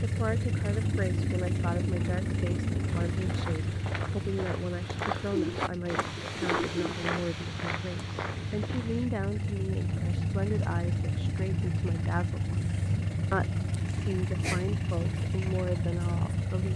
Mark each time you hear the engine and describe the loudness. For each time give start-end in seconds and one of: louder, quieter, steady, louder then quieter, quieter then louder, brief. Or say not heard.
0.0-16.7 quieter then louder.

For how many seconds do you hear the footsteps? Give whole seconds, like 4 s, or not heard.
6 s.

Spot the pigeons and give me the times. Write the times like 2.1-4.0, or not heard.
5.3-7.0.